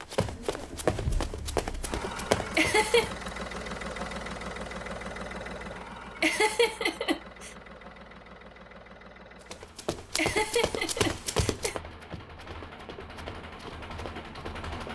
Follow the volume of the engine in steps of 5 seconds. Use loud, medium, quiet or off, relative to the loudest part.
loud, medium, medium.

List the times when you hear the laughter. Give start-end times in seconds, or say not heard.
2.5-3.1, 6.2-7.5, 10.2-11.8.